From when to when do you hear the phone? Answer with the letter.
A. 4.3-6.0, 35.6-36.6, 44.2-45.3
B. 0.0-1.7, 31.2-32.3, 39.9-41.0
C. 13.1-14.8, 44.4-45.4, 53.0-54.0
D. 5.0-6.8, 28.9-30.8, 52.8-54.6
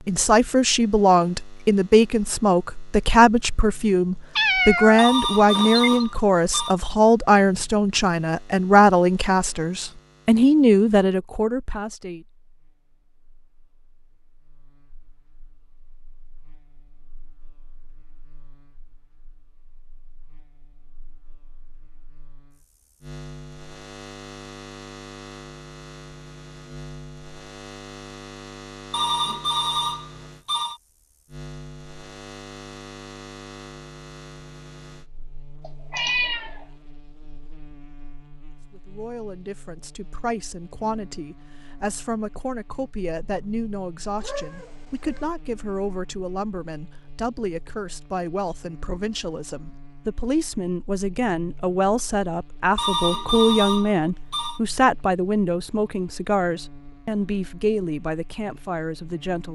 D.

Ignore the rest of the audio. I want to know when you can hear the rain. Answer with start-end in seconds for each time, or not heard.
not heard.